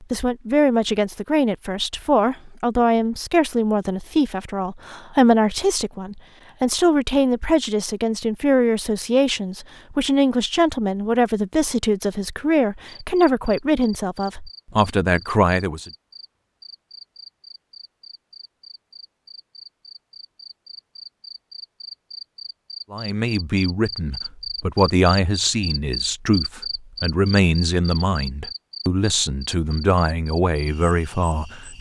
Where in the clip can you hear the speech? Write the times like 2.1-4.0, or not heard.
0.0-15.9, 22.9-31.7.